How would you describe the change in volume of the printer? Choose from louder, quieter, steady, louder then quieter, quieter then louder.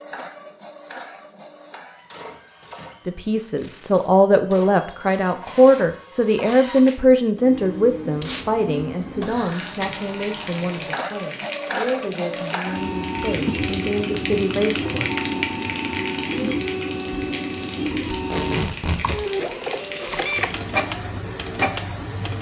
louder.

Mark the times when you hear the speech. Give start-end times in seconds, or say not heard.
3.0-15.3.